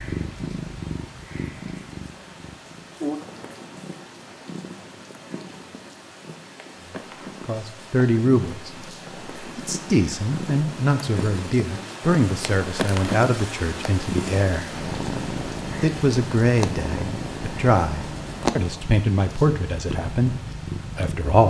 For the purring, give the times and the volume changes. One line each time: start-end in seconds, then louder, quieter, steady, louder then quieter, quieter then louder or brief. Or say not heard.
0.0-21.4 quieter then louder.